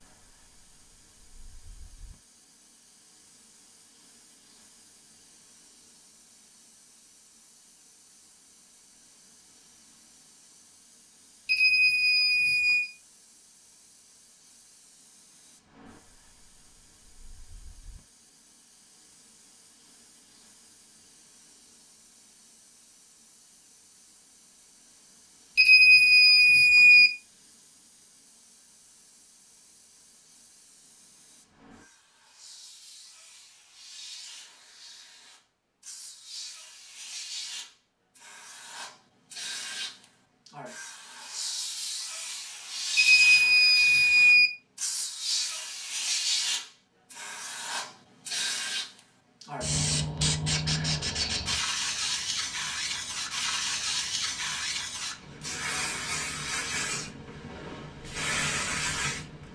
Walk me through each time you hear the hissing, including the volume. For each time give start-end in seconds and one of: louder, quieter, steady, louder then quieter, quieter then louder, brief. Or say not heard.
0.0-59.5 louder.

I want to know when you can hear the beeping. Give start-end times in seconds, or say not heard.
11.4-12.9, 25.6-27.1, 43.0-44.5.